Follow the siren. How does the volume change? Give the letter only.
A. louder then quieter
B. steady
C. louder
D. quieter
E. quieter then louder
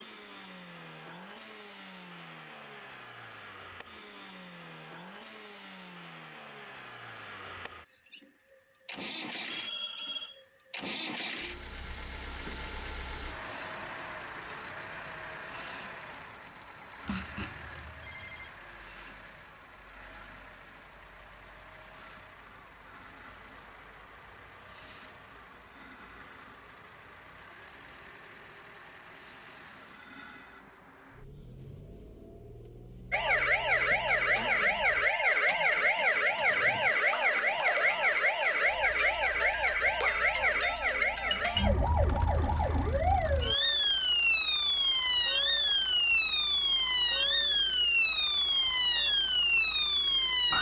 B.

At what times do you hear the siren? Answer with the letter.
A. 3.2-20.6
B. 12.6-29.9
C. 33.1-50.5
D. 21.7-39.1
C.